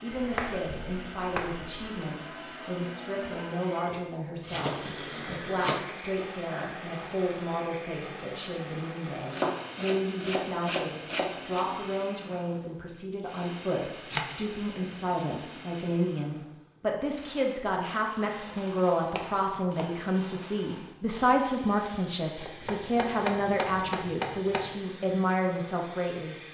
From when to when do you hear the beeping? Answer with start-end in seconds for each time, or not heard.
not heard.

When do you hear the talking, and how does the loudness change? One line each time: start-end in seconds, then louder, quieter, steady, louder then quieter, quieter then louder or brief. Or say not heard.
0.0-26.4 louder.